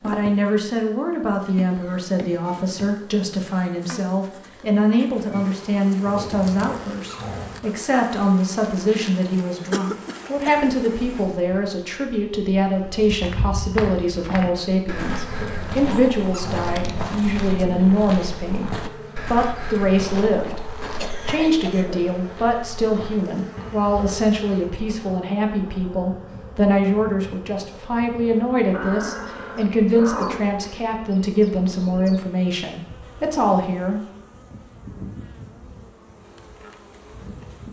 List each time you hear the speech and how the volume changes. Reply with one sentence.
You can hear the speech from 0.0 to 34.0 s, at a steady volume.